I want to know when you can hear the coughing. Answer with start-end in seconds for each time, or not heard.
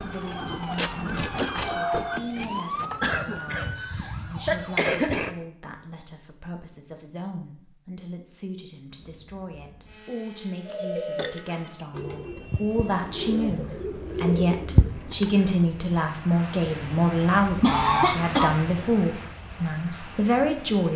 3.0-5.3, 17.6-18.5.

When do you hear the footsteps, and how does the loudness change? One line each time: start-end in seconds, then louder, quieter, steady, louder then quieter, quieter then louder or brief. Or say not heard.
not heard.